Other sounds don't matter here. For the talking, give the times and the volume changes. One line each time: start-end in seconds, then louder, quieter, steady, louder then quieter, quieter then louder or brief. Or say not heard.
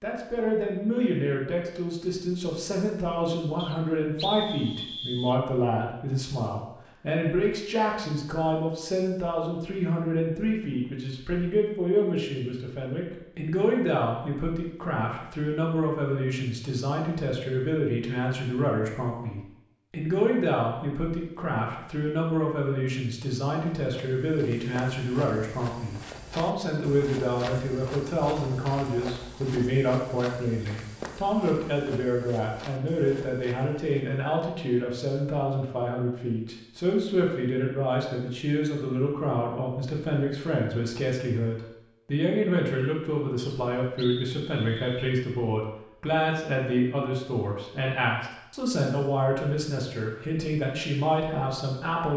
0.0-52.1 steady.